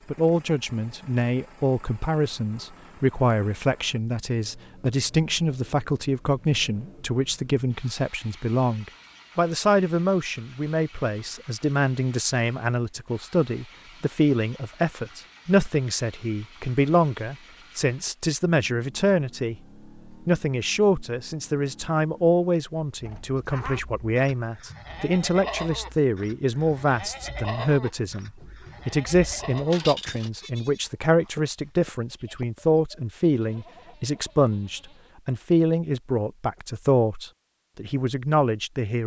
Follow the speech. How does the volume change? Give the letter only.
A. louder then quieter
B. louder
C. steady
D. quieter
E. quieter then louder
C.